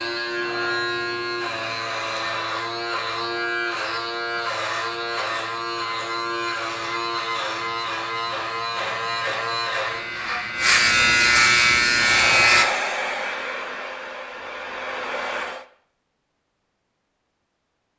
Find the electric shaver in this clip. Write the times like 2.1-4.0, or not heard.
0.0-12.7.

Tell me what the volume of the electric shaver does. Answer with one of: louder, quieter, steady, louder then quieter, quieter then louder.
louder.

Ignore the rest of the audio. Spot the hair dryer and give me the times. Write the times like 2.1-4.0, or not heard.
11.9-15.7.